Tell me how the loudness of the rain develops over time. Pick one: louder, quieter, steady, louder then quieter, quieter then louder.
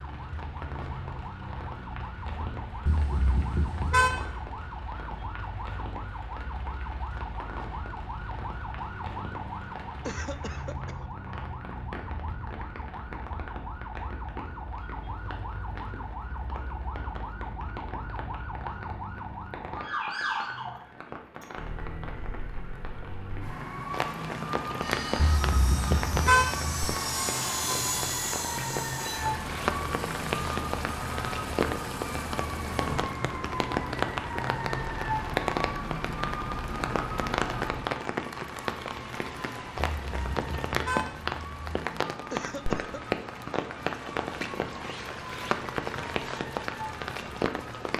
louder.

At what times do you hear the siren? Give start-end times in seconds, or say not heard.
0.0-47.9.